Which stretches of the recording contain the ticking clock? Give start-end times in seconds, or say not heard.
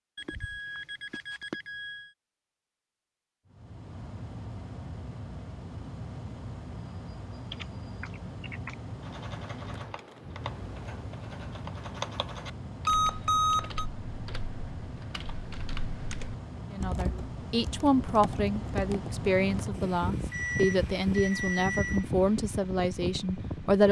not heard.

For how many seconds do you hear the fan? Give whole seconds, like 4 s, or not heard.
20 s.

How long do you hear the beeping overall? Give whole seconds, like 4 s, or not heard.
5 s.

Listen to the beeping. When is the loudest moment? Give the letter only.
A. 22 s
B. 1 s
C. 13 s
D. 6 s
C.